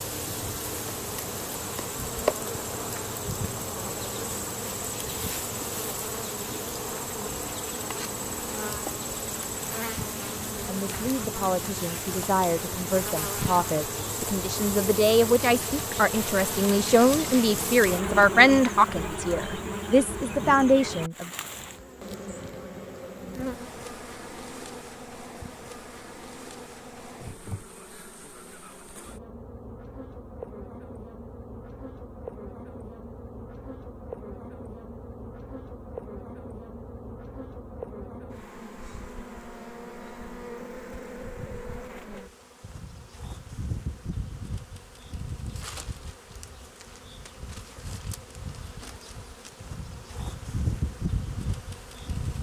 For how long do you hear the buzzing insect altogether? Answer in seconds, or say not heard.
52 s.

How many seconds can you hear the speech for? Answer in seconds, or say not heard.
11 s.